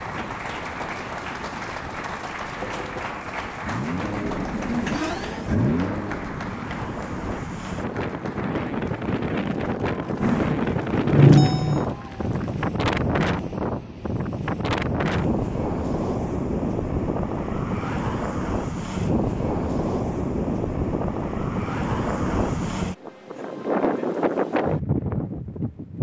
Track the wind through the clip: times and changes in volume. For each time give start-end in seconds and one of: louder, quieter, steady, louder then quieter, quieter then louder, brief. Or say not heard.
0.0-25.9 louder.